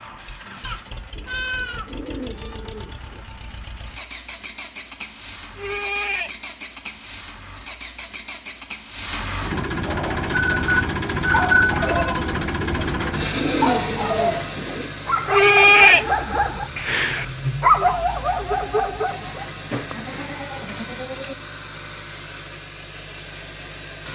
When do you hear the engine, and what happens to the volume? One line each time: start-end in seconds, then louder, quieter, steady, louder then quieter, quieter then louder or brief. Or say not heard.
0.0-24.1 louder then quieter.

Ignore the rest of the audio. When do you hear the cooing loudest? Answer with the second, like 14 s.
14 s.